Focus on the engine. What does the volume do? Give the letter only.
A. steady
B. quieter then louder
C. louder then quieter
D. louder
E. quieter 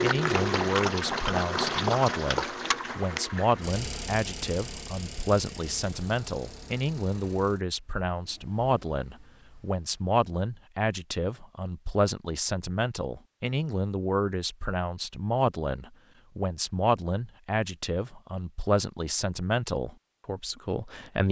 E.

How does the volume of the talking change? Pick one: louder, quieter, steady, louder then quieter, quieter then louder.
steady.